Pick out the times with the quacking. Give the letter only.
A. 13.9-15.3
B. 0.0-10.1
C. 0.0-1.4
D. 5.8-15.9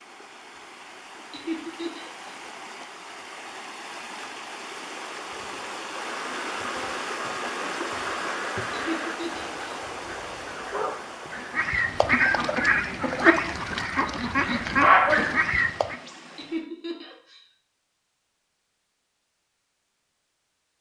D.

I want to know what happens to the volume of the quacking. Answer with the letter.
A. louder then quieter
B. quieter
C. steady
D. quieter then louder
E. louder
E.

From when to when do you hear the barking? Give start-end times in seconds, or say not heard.
13.9-15.3.